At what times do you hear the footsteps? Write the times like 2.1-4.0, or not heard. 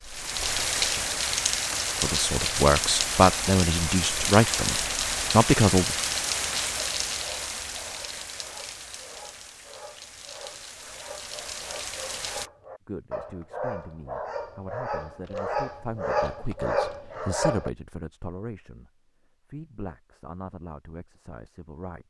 not heard.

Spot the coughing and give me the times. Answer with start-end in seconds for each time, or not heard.
not heard.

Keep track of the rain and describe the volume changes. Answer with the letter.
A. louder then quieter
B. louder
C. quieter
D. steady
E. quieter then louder
C.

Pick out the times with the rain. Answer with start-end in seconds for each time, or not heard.
0.0-12.5.